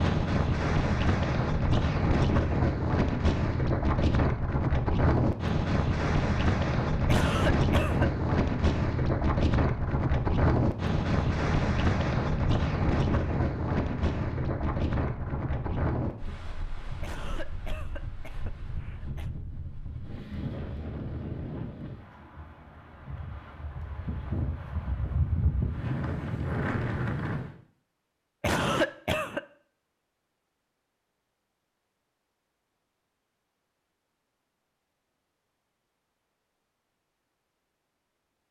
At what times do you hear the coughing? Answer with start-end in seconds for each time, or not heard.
7.0-8.1, 17.0-19.3, 28.4-29.4.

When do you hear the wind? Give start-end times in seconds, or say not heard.
0.0-27.6.